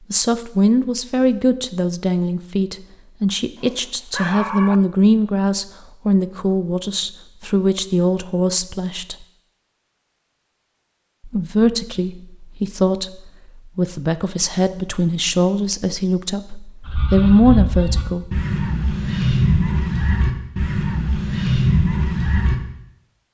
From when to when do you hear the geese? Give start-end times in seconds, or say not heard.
16.9-22.6.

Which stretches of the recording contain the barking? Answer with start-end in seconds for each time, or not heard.
3.5-4.8.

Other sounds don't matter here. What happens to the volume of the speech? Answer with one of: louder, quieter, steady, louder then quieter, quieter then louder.
steady.